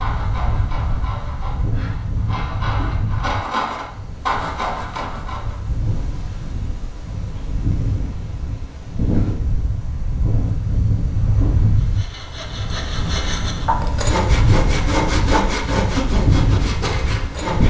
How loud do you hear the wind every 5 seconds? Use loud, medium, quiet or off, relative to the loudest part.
medium, medium, loud, loud.